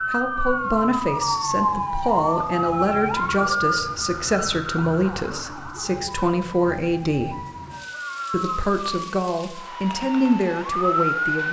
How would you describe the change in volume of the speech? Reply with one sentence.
The volume of the speech stays about the same.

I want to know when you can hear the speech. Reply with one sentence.
You can hear the speech from 0.1 to 7.4 s and from 8.3 to 11.4 s.